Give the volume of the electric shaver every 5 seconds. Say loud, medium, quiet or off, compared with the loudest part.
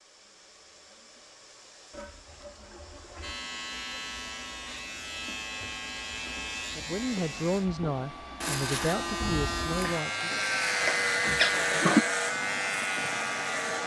medium, medium, loud.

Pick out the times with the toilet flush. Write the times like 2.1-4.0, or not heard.
1.9-3.4, 10.8-12.1.